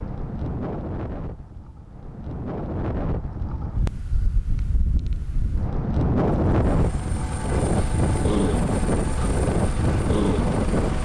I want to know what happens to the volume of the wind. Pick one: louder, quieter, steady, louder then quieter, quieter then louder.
louder.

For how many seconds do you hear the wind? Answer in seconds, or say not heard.
11 s.